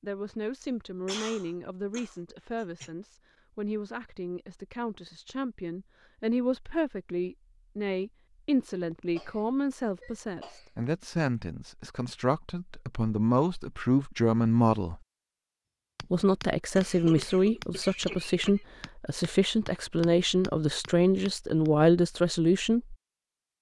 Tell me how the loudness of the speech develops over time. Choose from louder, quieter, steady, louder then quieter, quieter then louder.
louder.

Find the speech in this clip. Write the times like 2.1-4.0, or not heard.
0.0-15.0, 16.0-22.9.